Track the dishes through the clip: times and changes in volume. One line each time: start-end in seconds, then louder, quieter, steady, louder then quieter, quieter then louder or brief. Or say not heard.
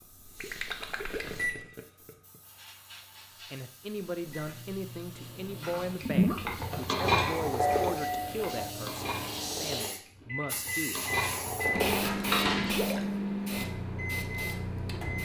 5.6-12.8 quieter then louder.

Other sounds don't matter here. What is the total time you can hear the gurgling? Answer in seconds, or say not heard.
3 s.